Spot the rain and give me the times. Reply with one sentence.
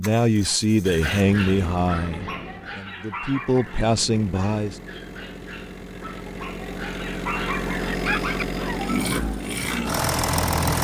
The rain can't be heard in this clip.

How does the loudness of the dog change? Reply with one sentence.
The volume of the dog goes down, then up.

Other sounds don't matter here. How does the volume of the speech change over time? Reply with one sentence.
The volume of the speech goes down, then up.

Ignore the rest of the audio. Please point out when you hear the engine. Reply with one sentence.
You can hear the engine from 0.0 to 10.8 s.